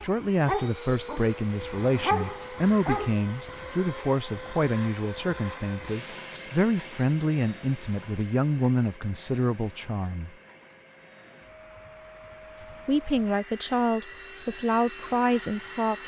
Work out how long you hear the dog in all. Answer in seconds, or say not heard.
4 s.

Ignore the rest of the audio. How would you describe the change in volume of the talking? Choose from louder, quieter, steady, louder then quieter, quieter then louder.
steady.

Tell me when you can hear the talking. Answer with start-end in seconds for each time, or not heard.
0.0-10.3, 12.8-16.0.